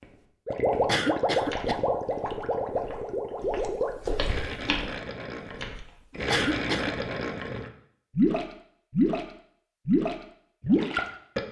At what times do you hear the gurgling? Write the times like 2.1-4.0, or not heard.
0.5-9.2, 9.8-11.4.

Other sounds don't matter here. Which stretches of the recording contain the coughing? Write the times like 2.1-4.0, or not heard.
0.8-1.8, 6.3-7.0.